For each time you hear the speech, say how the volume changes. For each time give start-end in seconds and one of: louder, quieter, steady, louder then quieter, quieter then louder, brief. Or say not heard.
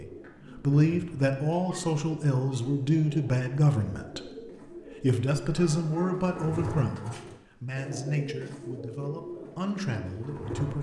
0.0-10.7 quieter.